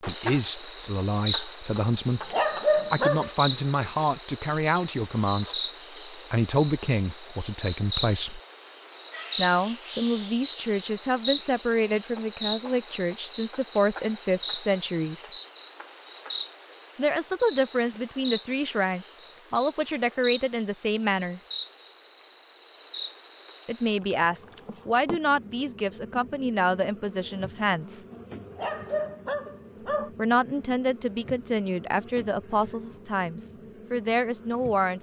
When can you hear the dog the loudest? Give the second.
3 s.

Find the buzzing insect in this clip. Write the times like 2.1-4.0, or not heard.
0.0-34.9.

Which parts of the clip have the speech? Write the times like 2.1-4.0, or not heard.
0.1-8.4, 9.3-15.3, 16.9-21.4, 23.6-28.1, 30.1-34.9.